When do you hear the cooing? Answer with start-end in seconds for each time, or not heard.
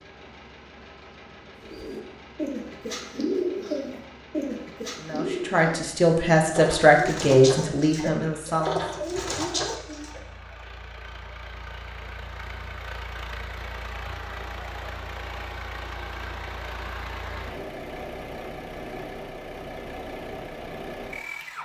1.6-10.2.